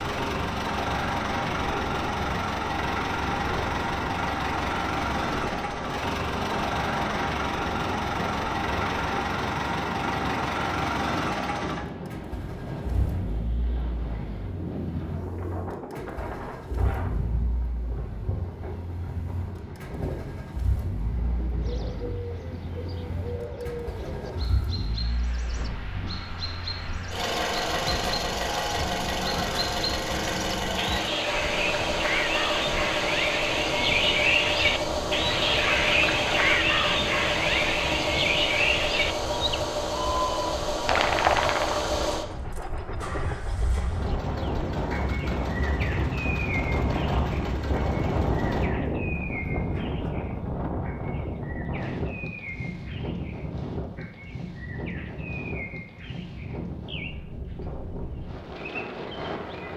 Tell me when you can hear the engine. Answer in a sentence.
The engine can be heard from 0.0 to 48.7 s.